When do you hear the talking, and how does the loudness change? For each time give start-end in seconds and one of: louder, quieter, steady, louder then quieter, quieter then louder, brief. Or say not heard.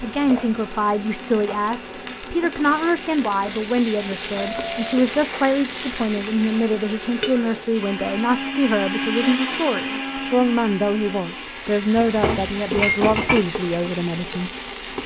0.0-14.5 steady.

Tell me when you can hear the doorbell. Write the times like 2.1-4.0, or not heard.
4.3-5.0.